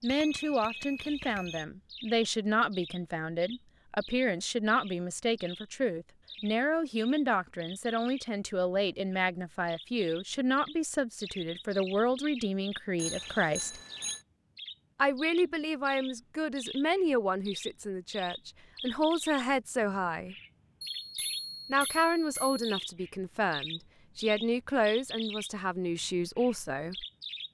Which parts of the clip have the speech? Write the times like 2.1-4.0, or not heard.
0.0-13.8, 14.9-20.4, 21.7-27.1.